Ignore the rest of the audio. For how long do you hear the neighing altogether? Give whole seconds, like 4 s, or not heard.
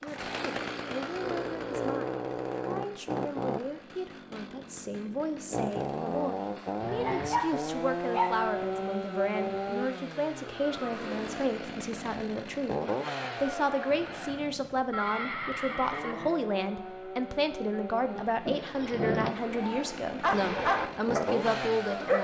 3 s.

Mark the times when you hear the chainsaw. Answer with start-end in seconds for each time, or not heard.
0.0-22.1.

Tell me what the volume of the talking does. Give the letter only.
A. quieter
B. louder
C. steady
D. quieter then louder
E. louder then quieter
B.